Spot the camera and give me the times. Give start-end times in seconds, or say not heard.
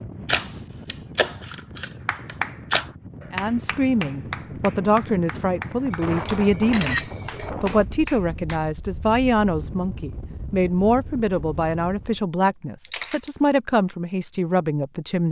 0.2-2.9, 5.9-7.5, 12.9-13.3.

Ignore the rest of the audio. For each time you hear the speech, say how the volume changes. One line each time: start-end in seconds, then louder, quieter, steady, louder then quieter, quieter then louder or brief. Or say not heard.
3.3-15.2 steady.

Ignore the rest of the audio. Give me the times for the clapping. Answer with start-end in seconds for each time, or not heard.
2.0-8.6.